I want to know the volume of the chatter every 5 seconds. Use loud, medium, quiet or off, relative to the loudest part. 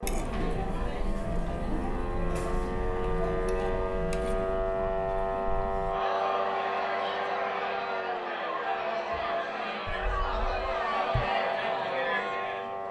medium, loud, loud.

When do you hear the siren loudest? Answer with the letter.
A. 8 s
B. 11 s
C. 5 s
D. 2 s
C.